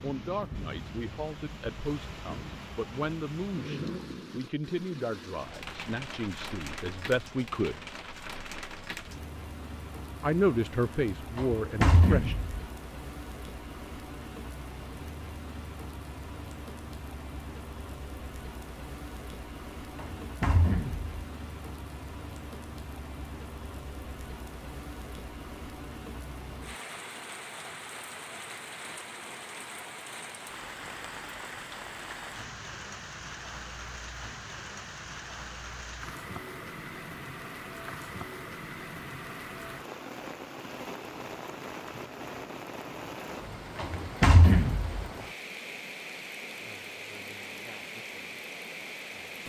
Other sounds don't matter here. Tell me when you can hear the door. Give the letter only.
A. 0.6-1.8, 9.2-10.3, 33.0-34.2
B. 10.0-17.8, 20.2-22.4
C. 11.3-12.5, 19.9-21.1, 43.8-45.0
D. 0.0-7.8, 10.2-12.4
C.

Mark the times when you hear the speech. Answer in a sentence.
The speech can be heard from 0.0 to 7.8 s and from 10.2 to 12.4 s.